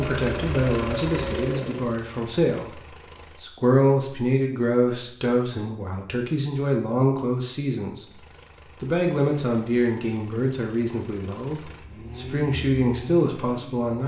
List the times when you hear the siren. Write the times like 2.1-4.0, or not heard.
0.0-1.9.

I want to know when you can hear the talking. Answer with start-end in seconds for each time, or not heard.
0.0-2.8, 3.4-8.1, 8.8-14.0.